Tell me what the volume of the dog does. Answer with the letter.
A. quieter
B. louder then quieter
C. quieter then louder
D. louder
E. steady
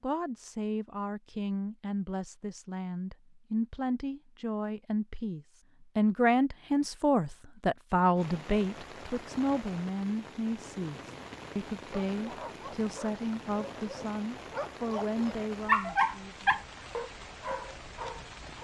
B.